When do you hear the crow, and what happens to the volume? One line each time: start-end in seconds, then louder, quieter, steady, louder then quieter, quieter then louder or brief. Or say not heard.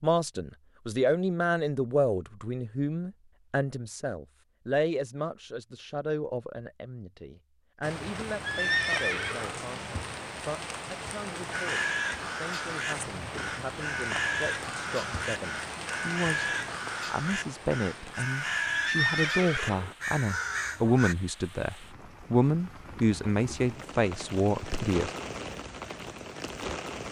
11.5-21.1 steady.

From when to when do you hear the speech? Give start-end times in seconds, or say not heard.
0.0-25.1.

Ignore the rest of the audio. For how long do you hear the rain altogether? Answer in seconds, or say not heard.
19 s.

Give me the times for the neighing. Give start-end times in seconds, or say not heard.
8.4-9.7, 18.7-19.9.